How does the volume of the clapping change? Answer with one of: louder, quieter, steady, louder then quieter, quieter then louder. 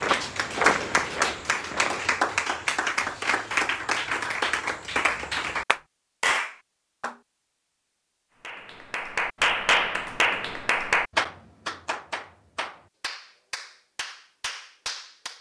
quieter.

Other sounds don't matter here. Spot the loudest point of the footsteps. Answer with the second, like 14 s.
1 s.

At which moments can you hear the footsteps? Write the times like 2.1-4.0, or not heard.
0.0-2.0.